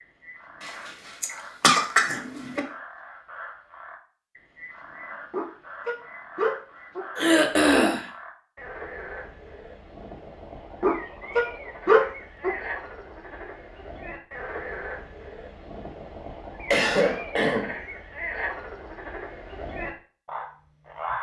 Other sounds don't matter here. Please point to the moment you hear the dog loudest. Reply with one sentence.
The volume of the dog peaks at 12 seconds.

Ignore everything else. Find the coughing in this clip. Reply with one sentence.
The coughing can be heard from 1.2 to 2.6 s, from 7.2 to 8.1 s and from 16.7 to 17.8 s.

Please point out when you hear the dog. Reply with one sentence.
You can hear the dog from 5.3 to 7.0 s and from 10.8 to 12.6 s.